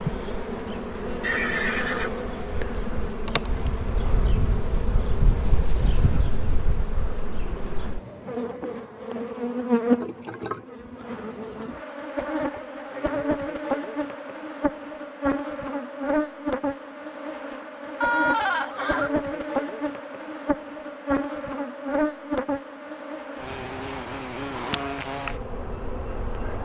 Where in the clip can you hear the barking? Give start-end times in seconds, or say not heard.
not heard.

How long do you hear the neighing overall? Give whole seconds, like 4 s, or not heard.
2 s.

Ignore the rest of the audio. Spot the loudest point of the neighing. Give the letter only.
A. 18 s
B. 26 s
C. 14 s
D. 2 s
A.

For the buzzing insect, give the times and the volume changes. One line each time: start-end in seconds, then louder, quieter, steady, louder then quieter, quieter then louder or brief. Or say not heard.
0.0-26.6 steady.